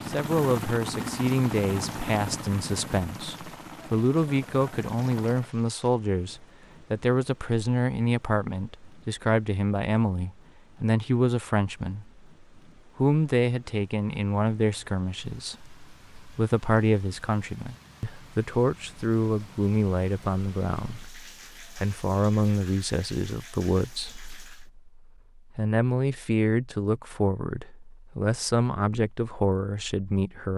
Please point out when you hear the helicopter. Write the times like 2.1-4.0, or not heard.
0.0-5.5.